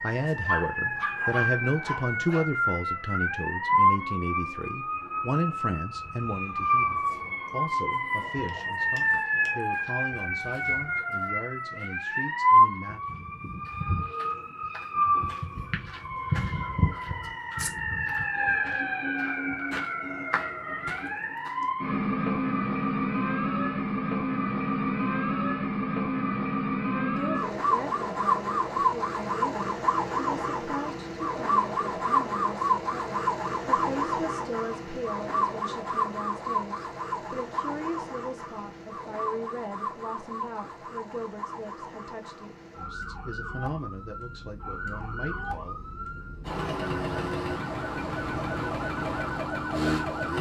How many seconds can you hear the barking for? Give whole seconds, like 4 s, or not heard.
2 s.